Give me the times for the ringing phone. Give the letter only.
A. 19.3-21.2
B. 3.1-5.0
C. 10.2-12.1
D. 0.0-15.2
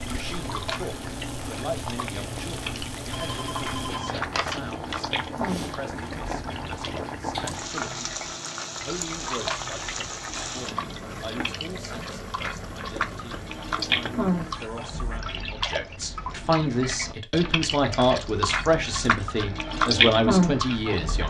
B.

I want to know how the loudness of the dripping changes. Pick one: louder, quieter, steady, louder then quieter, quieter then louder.
louder.